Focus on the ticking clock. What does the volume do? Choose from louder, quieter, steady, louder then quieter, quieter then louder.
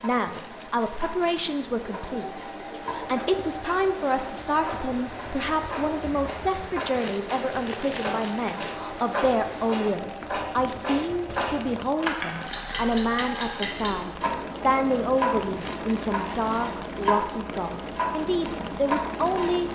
louder.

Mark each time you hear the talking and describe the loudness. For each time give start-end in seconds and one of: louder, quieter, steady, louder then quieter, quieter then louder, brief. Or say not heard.
0.0-19.6 steady.